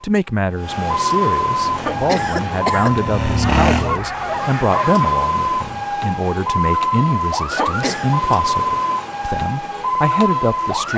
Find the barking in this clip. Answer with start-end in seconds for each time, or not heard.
3.4-5.1.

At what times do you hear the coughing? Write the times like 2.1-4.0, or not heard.
1.8-3.0, 7.5-8.2.